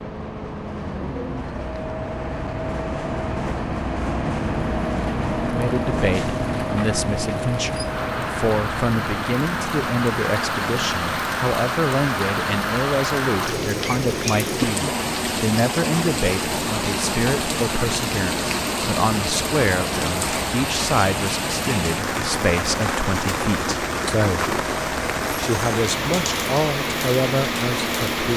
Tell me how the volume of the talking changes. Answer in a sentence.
The volume of the talking stays about the same.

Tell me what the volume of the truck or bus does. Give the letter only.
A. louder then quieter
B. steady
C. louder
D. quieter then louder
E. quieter
E.